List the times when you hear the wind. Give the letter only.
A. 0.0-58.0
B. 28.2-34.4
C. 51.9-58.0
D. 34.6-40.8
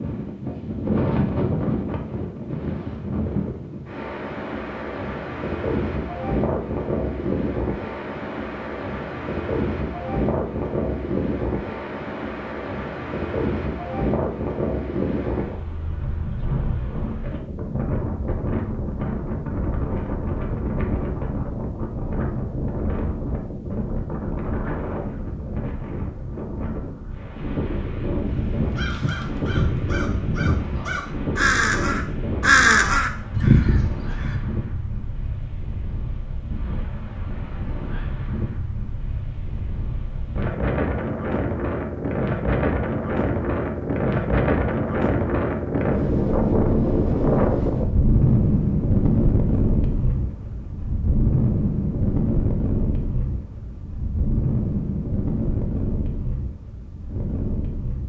A.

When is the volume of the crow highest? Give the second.
33 s.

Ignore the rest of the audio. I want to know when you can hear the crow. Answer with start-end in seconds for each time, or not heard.
28.2-34.4.